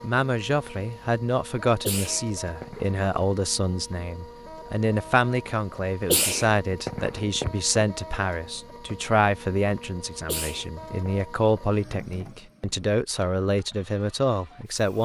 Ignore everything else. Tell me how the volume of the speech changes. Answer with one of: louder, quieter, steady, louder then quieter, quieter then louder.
steady.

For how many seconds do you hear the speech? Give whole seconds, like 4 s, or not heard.
15 s.